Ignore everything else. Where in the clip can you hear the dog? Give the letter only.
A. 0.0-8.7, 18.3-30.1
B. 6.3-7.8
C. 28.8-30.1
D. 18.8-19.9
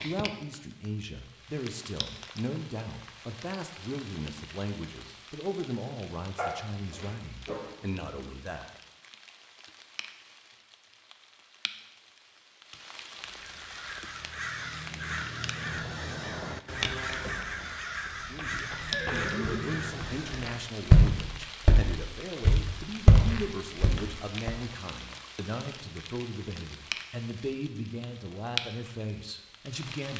B.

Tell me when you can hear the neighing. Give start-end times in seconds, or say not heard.
18.8-19.9.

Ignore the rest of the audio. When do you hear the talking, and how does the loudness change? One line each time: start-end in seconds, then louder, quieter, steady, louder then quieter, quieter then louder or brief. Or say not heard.
0.0-8.7 steady
18.3-30.1 steady.